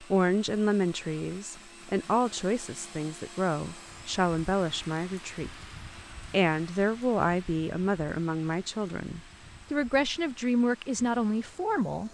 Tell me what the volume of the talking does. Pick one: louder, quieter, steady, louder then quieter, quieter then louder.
steady.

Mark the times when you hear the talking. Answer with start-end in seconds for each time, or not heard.
0.0-5.7, 6.3-12.0.